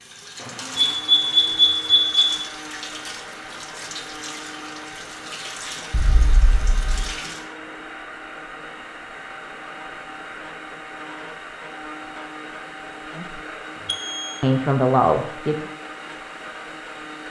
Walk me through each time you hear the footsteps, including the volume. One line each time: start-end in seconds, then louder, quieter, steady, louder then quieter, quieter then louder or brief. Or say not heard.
not heard.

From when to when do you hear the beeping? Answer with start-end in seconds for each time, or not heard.
0.8-2.4, 5.9-7.1, 13.8-14.4.